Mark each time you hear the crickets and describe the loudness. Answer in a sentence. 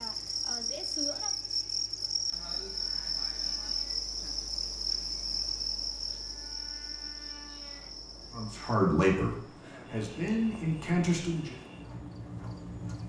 You can hear the crickets from 0.0 to 13.0 s, getting quieter.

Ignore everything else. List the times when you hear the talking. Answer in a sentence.
You can hear the talking from 8.3 to 11.6 s.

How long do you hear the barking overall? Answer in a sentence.
You can't hear the barking here.